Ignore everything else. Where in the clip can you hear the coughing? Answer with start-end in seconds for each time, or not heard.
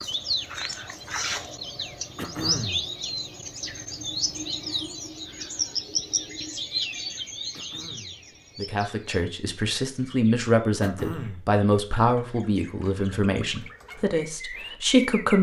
2.1-2.9, 7.5-8.2, 10.8-11.5.